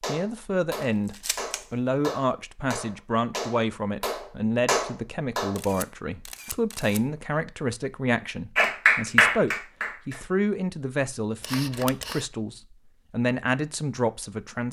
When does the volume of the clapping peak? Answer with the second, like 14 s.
9 s.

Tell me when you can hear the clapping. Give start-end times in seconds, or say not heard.
0.0-5.6, 8.6-10.2.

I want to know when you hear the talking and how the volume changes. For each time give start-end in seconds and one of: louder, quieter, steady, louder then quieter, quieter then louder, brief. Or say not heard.
0.0-14.6 steady.